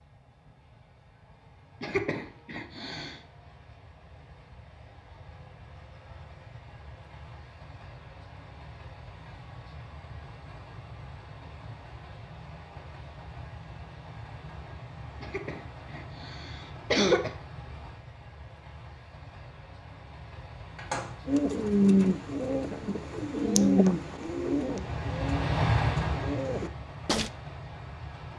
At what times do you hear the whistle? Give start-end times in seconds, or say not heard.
not heard.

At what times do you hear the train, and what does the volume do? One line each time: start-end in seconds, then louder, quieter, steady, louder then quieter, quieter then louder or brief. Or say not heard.
0.0-28.3 louder.